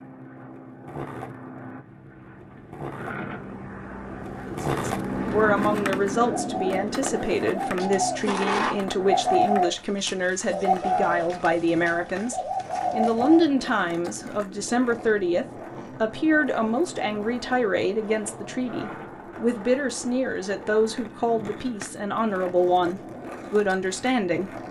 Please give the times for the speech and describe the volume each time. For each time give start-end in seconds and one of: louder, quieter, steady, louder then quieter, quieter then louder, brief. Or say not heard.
4.3-24.5 steady.